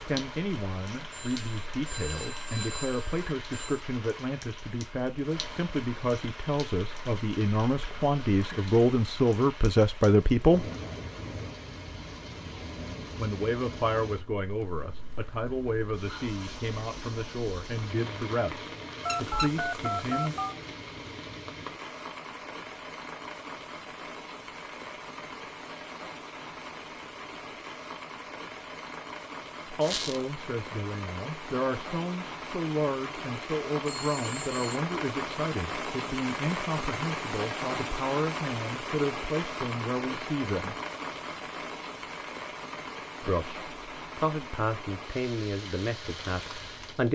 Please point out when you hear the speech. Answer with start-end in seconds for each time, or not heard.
0.1-10.7, 13.2-20.4, 29.7-40.8, 43.2-47.1.